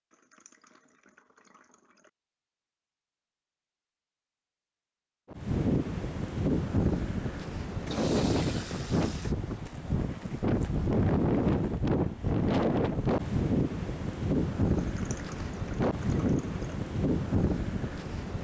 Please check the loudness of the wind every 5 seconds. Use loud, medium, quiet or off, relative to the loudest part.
off, loud, loud, loud.